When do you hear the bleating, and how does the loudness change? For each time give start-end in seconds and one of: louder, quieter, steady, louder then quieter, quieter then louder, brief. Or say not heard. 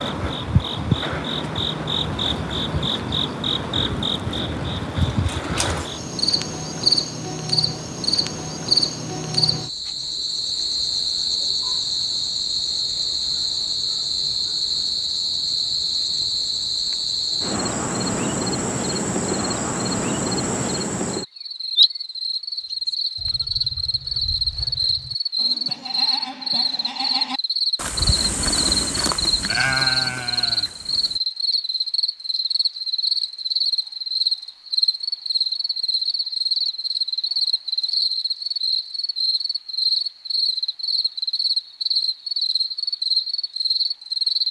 22.9-31.2 louder.